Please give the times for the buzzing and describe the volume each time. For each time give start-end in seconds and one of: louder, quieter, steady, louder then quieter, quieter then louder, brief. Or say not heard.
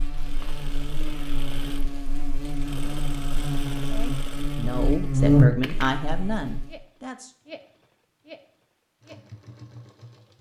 0.0-6.8 louder.